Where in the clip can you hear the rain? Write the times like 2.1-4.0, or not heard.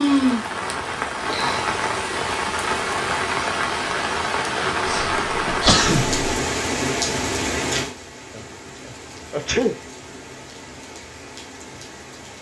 0.0-12.3.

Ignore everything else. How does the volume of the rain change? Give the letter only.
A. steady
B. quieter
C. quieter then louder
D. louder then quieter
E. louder
B.